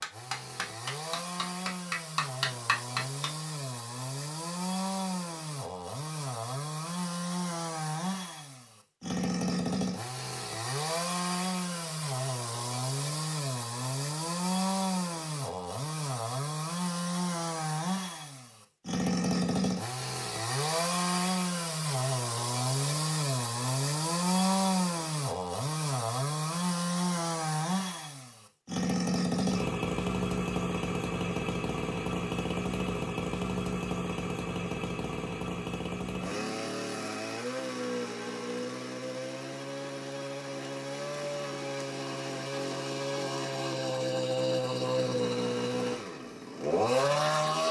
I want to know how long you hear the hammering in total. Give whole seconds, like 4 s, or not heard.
3 s.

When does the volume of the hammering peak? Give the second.
3 s.